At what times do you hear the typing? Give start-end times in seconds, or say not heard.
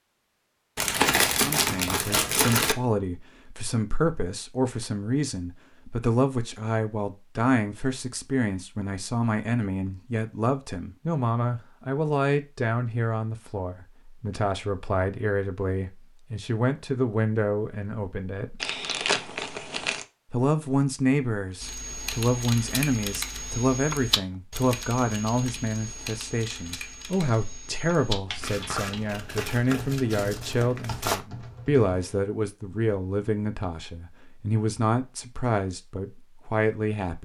21.6-32.2.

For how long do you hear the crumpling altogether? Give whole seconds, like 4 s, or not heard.
6 s.